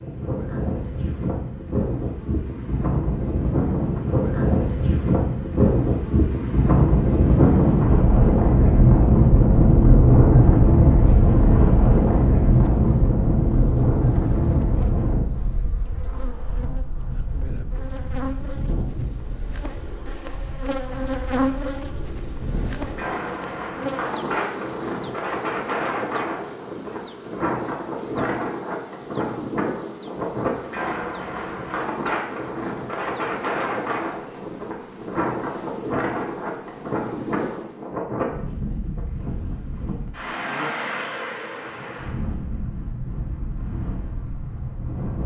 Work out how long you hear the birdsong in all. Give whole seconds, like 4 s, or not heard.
not heard.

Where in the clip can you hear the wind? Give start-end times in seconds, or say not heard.
0.0-45.2.